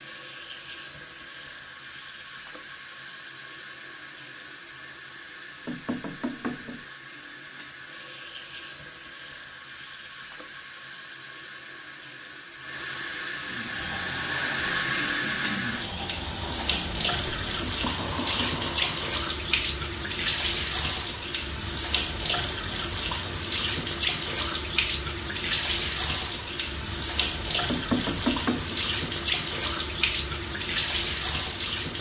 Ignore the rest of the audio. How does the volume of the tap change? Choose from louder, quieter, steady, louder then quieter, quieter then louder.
louder.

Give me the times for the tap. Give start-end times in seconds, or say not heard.
0.0-31.9.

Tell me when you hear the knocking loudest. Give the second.
28 s.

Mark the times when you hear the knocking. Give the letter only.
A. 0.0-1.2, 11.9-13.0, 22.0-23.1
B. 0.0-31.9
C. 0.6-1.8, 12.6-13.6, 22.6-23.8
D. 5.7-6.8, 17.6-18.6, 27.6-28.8
D.